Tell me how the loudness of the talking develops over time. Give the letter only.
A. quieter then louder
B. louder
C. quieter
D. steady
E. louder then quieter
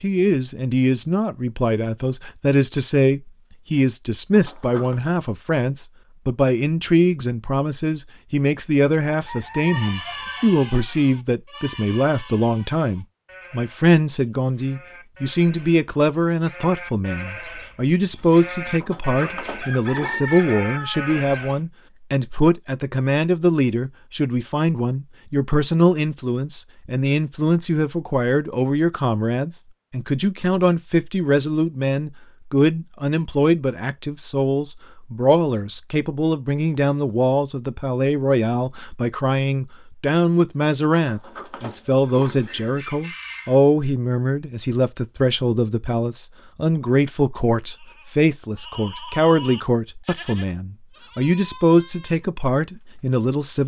D.